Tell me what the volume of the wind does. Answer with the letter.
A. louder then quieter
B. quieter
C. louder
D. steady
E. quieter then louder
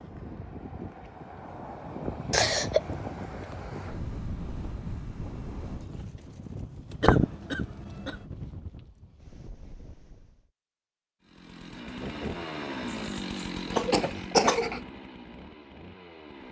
B.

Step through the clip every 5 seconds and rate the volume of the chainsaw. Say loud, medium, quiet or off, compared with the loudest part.
off, off, loud, medium.